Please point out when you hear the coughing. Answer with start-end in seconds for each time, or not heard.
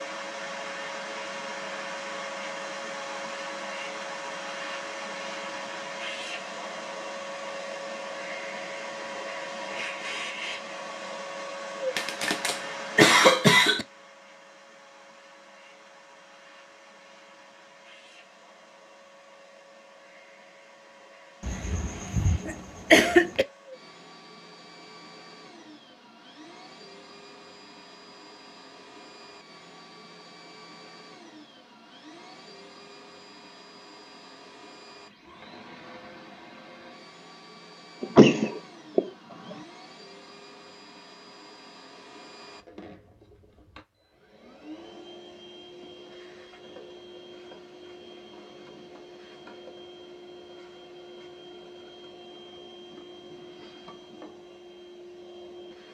11.9-13.8, 21.4-23.4, 38.0-39.5.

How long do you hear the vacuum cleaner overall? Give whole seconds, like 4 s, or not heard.
56 s.